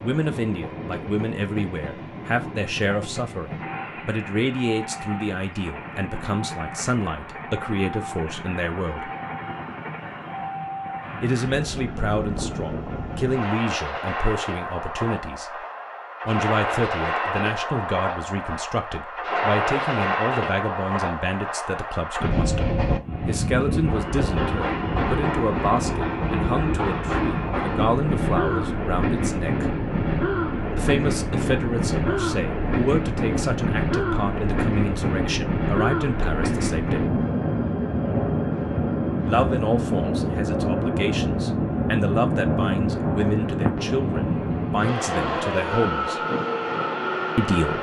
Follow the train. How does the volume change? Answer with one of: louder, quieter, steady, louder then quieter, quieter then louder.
louder.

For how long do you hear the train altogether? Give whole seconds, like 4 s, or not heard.
48 s.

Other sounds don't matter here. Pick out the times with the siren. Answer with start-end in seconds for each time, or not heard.
not heard.